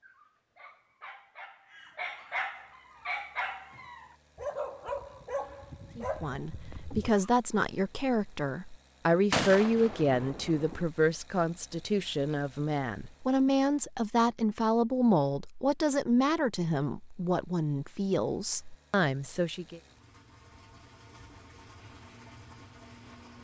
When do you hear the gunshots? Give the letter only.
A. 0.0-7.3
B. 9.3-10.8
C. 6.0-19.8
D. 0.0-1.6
B.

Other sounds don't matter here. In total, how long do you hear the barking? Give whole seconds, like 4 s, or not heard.
7 s.